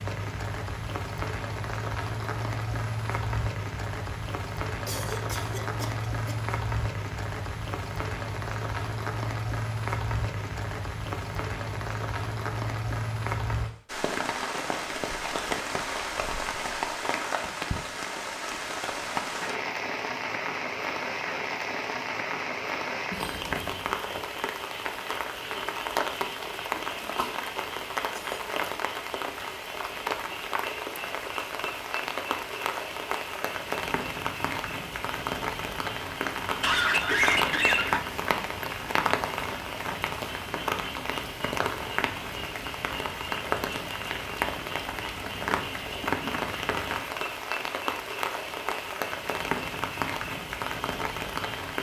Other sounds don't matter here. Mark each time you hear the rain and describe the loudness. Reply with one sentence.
You can hear the rain from 0.0 to 51.7 s, at a steady volume.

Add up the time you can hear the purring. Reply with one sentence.
You can't hear the purring here.